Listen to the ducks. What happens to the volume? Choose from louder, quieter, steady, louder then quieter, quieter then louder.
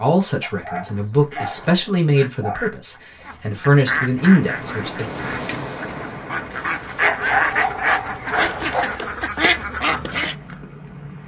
louder.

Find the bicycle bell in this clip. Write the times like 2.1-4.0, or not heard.
not heard.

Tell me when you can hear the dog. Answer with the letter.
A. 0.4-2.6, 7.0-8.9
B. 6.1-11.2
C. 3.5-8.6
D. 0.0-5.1
A.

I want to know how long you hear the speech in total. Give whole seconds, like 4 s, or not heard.
5 s.